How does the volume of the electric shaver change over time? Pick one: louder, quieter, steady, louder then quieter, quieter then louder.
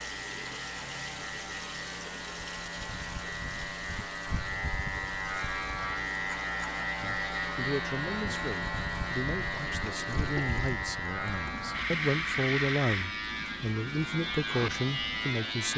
louder.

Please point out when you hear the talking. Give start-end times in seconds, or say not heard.
7.0-15.7.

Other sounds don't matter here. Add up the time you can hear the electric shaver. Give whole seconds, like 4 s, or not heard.
16 s.